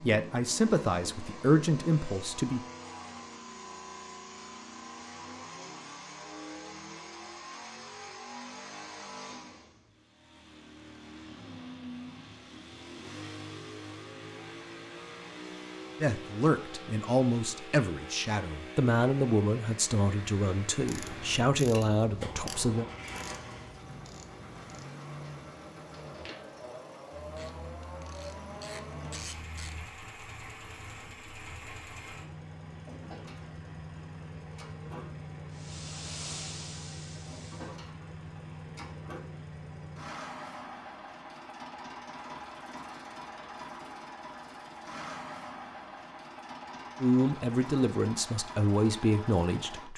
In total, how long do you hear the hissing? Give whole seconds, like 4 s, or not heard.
2 s.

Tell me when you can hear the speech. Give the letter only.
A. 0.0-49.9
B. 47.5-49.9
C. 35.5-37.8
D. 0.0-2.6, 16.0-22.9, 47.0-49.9
D.